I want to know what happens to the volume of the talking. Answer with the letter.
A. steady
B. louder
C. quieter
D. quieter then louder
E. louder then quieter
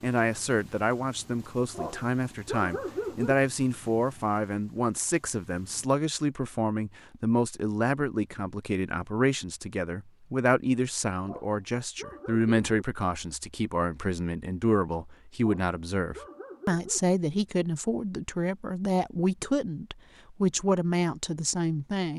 A.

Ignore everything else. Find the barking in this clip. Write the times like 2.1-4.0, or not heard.
1.7-3.4, 11.2-12.8, 15.4-17.0.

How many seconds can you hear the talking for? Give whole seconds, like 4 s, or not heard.
22 s.